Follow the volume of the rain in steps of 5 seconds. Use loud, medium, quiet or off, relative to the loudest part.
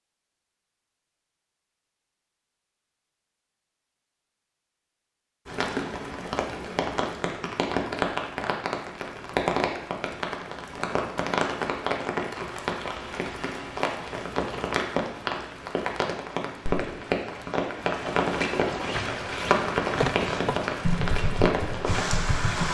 off, loud, loud, loud, loud.